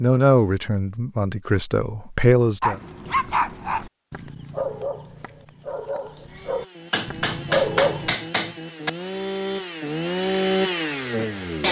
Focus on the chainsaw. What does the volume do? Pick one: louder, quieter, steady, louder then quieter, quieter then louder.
louder.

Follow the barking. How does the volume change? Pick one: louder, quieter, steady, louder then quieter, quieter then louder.
quieter then louder.